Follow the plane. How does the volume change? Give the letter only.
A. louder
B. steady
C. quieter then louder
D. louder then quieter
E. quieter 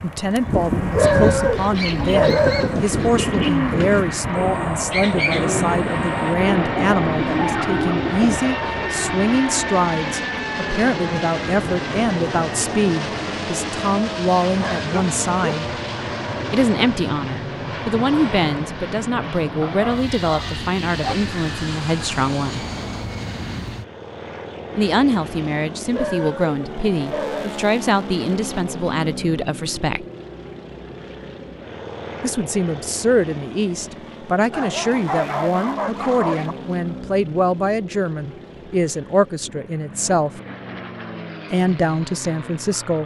E.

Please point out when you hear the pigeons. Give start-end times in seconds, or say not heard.
0.9-8.4.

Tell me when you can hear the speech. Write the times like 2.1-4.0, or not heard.
0.0-15.7, 16.5-22.6, 24.8-30.1, 32.2-40.4, 41.5-43.0.